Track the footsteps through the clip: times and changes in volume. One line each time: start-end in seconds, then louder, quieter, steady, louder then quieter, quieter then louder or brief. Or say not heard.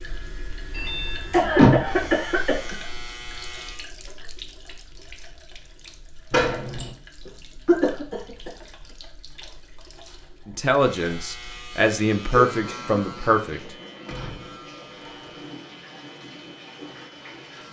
not heard.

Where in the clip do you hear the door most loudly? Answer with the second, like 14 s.
2 s.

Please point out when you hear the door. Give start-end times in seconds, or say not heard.
0.7-2.1, 6.3-7.0, 14.1-15.4.